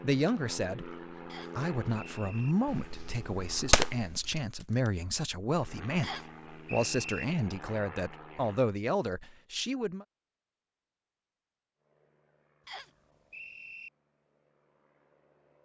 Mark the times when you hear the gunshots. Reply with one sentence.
You can hear the gunshots from 2.6 to 5.1 s.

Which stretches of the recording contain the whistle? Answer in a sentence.
The whistle can be heard from 1.2 to 2.5 s, from 6.0 to 7.2 s and from 12.7 to 13.9 s.